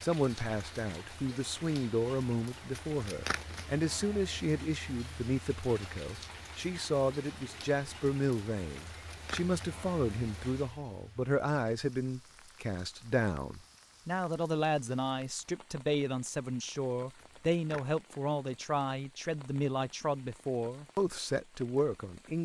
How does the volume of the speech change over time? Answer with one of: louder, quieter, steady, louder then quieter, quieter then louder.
steady.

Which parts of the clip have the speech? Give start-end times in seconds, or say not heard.
0.0-22.4.